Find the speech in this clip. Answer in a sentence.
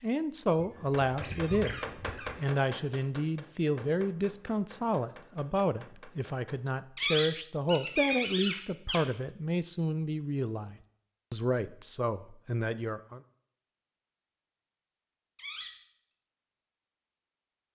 The speech can be heard from 0.0 to 13.2 s.